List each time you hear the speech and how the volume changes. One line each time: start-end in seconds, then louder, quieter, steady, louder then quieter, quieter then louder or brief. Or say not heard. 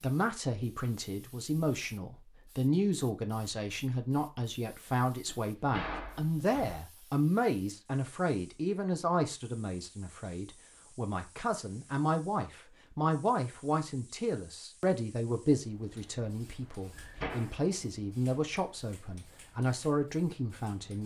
0.0-21.0 steady.